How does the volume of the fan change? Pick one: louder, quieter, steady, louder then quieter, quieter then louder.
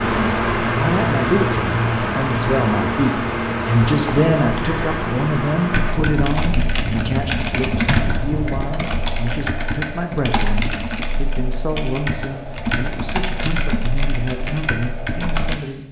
quieter.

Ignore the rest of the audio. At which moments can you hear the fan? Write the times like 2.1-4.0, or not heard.
0.0-8.7.